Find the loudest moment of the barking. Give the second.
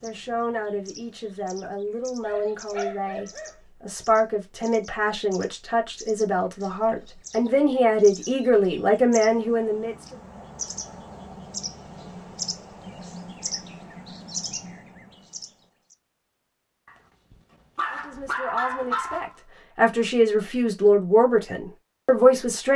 18 s.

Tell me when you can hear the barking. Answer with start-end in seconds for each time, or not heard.
2.2-3.6, 16.9-19.4.